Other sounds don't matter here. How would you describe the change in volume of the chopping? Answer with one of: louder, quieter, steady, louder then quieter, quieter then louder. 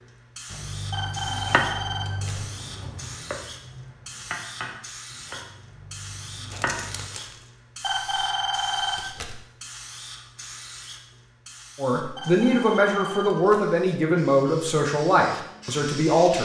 quieter.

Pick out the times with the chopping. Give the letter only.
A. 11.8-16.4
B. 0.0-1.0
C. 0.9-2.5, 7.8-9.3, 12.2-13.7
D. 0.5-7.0
D.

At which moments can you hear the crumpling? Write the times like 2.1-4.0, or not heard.
6.5-7.5.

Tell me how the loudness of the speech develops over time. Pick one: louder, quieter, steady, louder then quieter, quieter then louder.
quieter.